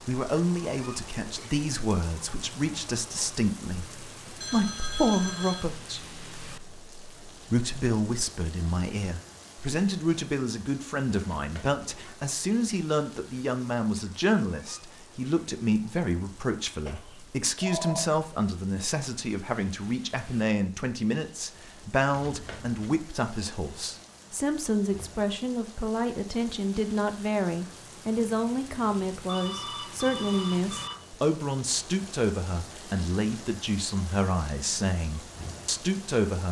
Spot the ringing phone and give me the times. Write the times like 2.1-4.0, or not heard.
4.4-5.7, 16.9-18.1, 29.2-30.9.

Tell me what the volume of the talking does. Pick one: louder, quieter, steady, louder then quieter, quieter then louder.
steady.